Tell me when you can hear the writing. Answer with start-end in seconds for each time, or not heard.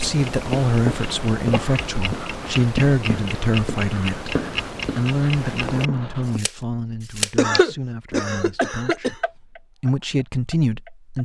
0.3-6.4.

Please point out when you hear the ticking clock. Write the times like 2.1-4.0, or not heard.
0.0-11.2.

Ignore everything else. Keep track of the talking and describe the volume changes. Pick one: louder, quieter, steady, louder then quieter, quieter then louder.
quieter then louder.